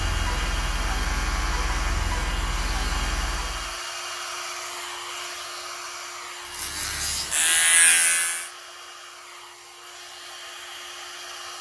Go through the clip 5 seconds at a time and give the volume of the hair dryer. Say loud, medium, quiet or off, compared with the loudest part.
loud, medium, medium.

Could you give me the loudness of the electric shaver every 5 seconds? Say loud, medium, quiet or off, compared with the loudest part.
medium, loud, off.